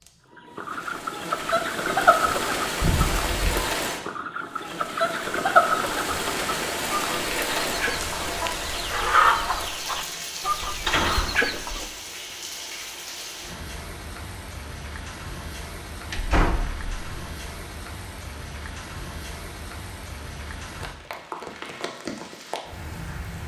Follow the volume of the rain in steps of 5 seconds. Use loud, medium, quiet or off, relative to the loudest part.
loud, loud, medium, medium, medium.